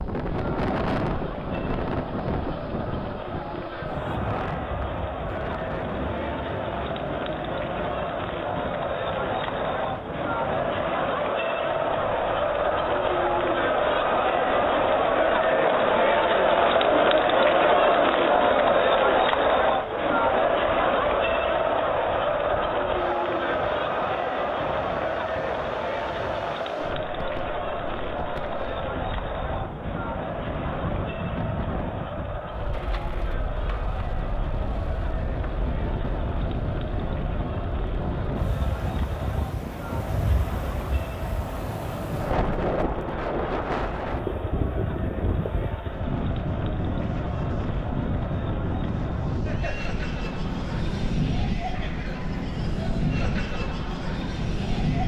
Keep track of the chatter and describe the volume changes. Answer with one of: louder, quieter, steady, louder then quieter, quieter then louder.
louder then quieter.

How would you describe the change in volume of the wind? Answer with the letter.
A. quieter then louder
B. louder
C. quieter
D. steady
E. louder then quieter
A.